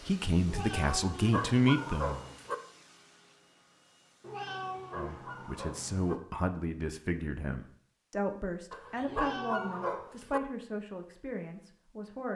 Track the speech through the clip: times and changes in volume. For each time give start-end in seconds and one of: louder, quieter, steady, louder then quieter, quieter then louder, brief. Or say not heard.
0.0-2.2 brief
4.9-12.3 quieter.